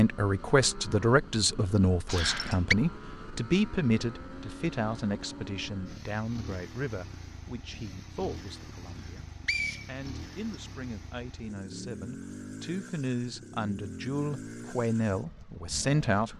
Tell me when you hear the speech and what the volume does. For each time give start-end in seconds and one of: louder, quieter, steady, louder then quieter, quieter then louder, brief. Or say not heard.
0.0-16.3 quieter then louder.